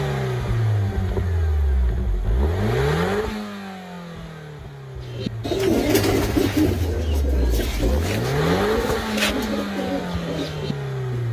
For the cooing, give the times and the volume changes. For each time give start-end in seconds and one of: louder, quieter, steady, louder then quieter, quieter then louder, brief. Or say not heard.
5.2-11.2 quieter.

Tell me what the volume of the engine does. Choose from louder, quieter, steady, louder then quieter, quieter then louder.
quieter then louder.